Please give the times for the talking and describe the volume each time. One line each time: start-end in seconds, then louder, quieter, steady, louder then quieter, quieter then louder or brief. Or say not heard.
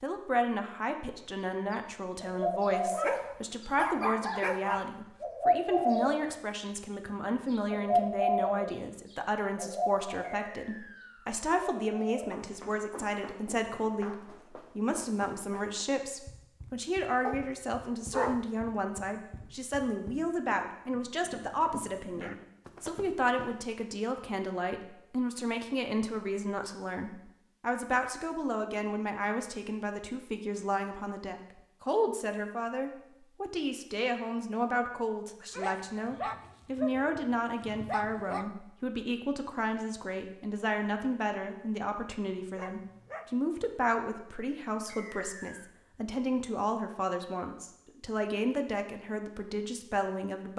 0.0-50.5 steady.